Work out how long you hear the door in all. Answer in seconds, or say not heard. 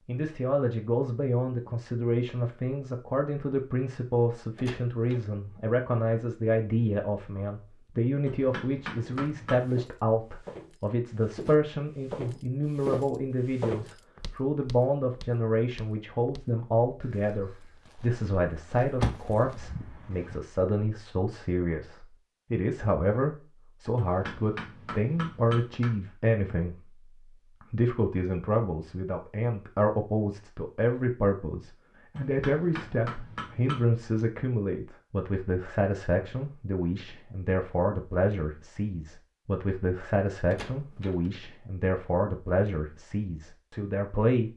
3 s.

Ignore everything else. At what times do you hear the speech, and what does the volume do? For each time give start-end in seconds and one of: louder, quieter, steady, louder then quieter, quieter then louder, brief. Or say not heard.
0.1-44.5 steady.